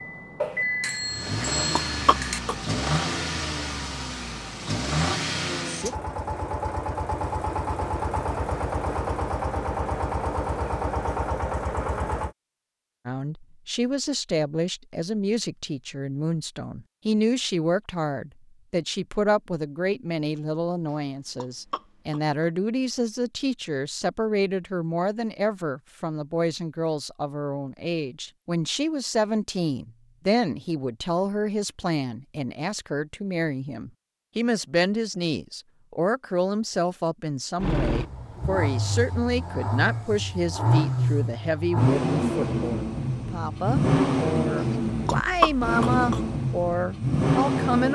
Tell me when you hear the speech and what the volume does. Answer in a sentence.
The speech can be heard from 13.1 to 47.8 s, at a steady volume.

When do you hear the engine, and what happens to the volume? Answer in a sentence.
You can hear the engine from 0.0 to 12.3 s, at a steady volume; and from 37.6 to 47.8 s, getting louder.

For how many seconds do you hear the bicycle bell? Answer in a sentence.
You can hear the bicycle bell for 2 seconds altogether.